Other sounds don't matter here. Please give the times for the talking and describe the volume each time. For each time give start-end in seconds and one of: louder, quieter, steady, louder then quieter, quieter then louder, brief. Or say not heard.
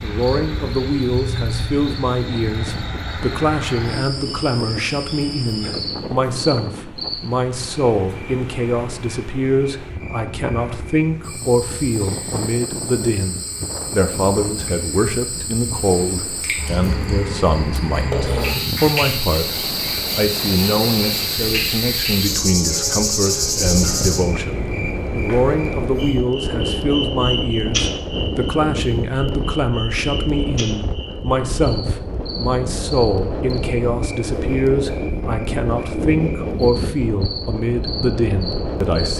0.0-39.1 steady.